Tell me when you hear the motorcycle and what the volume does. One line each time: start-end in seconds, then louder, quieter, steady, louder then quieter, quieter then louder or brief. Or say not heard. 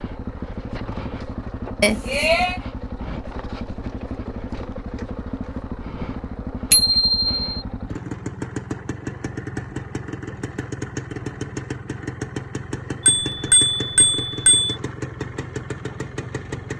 0.0-16.7 steady.